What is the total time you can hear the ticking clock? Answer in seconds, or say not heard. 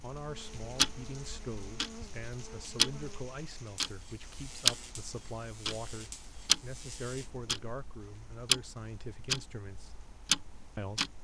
11 s.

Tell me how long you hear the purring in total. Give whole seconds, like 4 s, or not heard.
not heard.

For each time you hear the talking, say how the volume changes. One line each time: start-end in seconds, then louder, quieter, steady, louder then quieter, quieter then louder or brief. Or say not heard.
0.0-10.0 steady
10.8-11.2 brief.